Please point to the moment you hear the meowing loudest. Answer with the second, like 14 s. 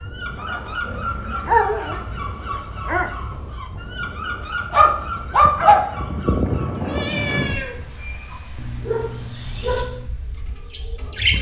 7 s.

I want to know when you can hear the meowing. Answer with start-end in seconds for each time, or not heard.
0.8-1.6, 6.8-7.8.